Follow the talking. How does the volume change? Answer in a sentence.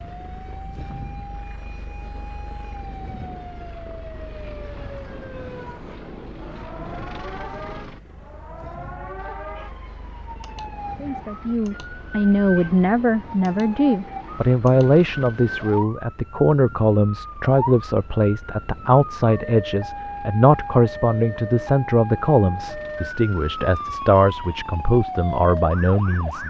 The volume of the talking stays about the same.